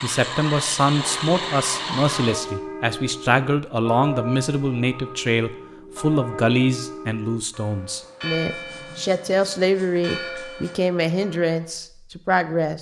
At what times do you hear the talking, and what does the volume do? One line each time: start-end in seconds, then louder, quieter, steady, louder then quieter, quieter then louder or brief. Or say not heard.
0.0-12.7 steady.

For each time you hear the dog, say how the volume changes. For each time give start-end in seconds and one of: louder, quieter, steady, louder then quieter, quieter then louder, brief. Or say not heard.
not heard.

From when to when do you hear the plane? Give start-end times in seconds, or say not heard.
0.0-2.4.